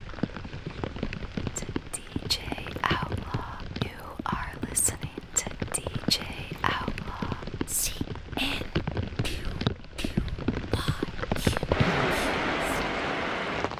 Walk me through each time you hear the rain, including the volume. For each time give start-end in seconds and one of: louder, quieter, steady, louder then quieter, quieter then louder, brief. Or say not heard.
0.0-13.7 louder.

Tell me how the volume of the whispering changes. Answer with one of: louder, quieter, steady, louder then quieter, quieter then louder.
quieter.